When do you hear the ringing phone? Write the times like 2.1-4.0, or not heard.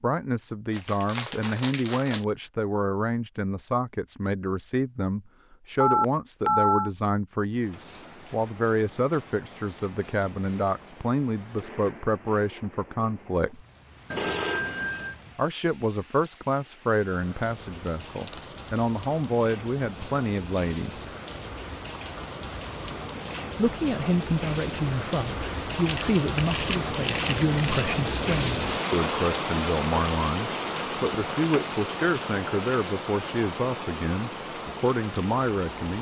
5.8-6.9, 14.1-15.2, 31.1-31.6.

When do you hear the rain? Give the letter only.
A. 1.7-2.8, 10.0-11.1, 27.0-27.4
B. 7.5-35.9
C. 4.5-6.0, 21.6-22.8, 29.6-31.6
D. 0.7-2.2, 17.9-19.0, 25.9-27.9
B.